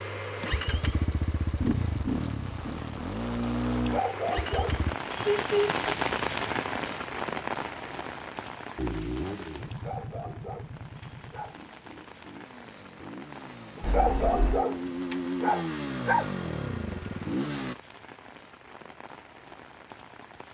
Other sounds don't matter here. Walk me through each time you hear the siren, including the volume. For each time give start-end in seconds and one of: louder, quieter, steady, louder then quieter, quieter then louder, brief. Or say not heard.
not heard.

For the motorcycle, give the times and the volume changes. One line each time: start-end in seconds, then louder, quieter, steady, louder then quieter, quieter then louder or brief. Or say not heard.
0.0-5.0 steady
8.8-17.8 quieter then louder.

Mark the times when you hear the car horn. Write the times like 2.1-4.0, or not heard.
5.2-5.8, 13.8-14.7.